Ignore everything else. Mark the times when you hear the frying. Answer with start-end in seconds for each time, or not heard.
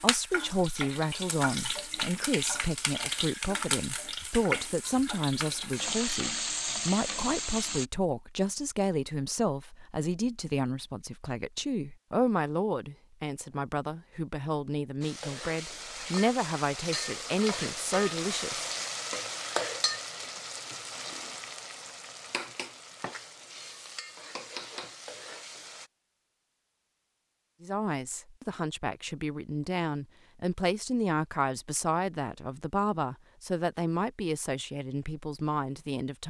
0.0-7.8, 15.0-25.9.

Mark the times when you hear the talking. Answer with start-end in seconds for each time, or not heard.
0.0-18.8, 27.6-36.2.